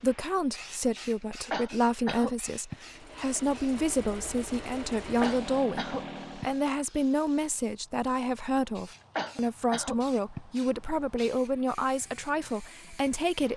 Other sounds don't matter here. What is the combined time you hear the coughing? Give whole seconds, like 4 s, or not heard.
4 s.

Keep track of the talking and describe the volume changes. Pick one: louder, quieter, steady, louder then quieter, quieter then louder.
steady.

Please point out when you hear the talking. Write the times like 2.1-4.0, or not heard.
0.0-13.5.